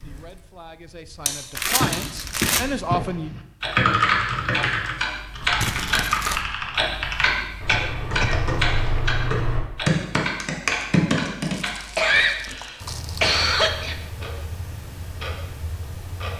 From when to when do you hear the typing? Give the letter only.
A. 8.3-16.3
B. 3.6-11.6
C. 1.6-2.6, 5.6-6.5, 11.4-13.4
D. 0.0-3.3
B.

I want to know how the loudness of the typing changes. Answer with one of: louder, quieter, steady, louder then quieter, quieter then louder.
quieter then louder.